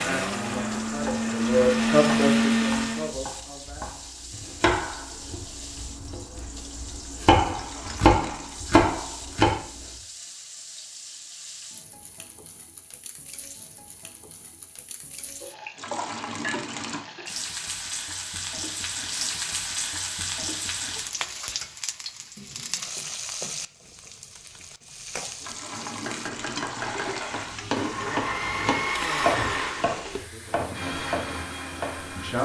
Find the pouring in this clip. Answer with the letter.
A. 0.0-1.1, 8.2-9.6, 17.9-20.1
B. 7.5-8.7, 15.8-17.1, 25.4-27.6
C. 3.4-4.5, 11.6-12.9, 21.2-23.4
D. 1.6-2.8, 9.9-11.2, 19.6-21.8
B.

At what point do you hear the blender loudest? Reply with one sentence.
The loudest moment of the blender is at 2 seconds.